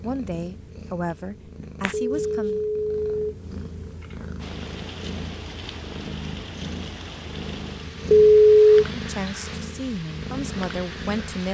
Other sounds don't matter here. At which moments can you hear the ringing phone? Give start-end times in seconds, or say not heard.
1.9-3.3, 8.1-8.8.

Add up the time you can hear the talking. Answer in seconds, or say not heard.
5 s.